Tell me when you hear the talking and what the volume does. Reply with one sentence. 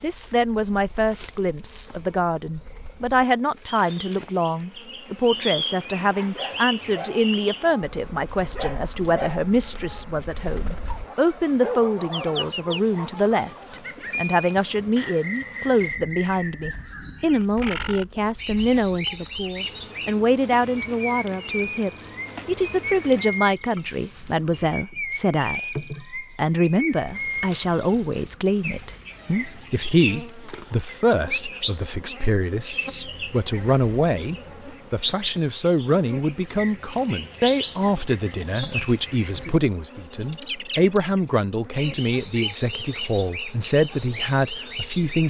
You can hear the talking from 0.0 to 45.2 s, at a steady volume.